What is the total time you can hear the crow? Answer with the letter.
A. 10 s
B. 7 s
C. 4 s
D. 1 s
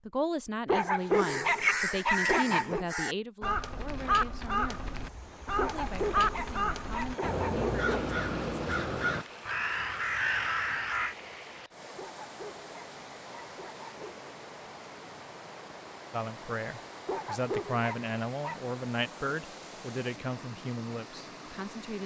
A.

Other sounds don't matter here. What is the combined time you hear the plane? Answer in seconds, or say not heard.
not heard.